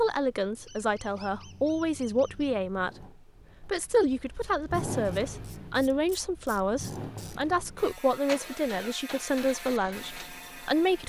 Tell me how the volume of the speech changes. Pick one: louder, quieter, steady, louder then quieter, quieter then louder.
steady.